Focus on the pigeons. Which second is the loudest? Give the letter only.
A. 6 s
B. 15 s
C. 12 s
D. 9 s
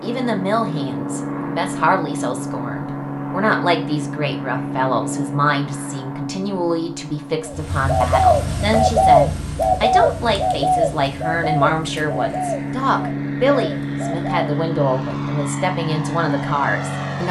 D.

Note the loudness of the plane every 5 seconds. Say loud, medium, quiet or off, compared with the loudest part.
loud, medium, loud, loud.